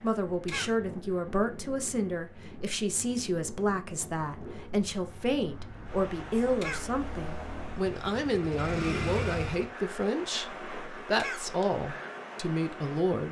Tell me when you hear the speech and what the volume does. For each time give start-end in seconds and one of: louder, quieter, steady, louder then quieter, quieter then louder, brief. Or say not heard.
0.0-13.2 steady.